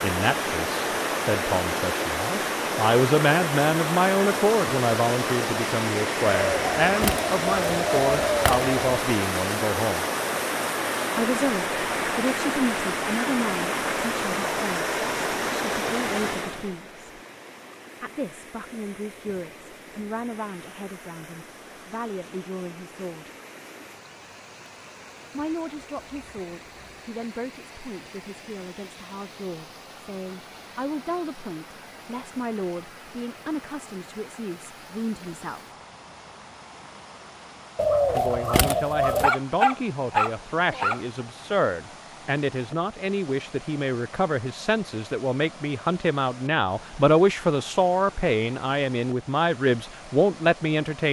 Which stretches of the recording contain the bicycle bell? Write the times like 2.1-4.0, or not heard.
not heard.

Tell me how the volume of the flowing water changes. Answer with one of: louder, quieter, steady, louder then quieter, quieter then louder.
quieter.